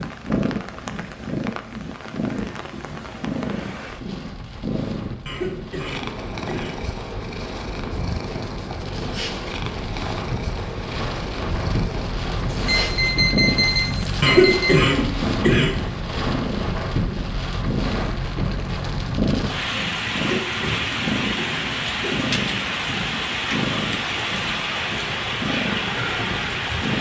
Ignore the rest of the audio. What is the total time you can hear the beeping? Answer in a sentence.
You can hear the beeping for 2 seconds altogether.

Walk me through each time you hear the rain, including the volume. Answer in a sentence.
You can hear the rain from 0.0 to 26.9 s, getting louder.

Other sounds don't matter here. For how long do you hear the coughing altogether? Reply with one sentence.
You can hear the coughing for 5 seconds altogether.